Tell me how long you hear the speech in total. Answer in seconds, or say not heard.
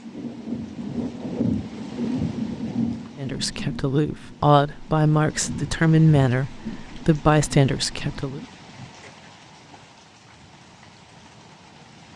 5 s.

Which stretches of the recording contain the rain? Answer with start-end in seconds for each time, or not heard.
0.0-12.1.